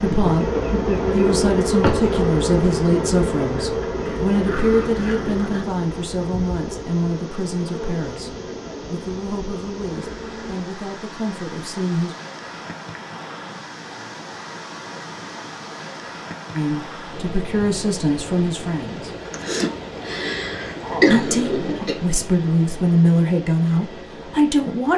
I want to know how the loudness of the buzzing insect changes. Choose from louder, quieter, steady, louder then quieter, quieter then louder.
quieter.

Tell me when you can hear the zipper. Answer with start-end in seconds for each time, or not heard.
not heard.